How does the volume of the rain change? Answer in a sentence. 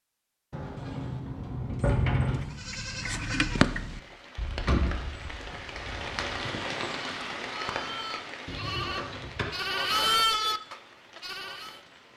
The loudness of the rain goes up, then down.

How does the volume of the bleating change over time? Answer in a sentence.
The volume of the bleating goes down, then up.